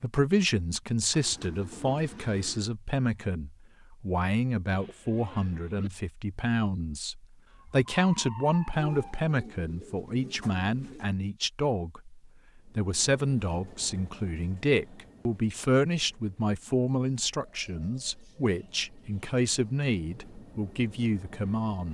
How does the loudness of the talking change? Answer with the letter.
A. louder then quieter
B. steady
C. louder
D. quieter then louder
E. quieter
B.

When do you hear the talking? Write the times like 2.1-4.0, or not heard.
0.0-21.8.